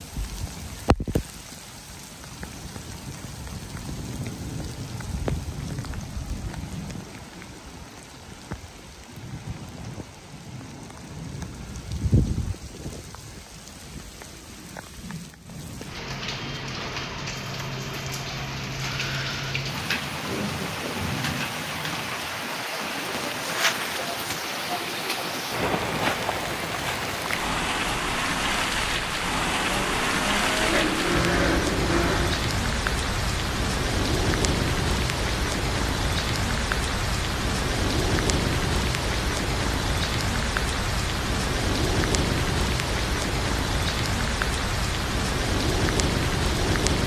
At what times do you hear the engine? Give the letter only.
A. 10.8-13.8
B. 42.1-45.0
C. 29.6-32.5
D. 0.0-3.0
C.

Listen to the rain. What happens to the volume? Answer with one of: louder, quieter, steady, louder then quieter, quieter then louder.
louder.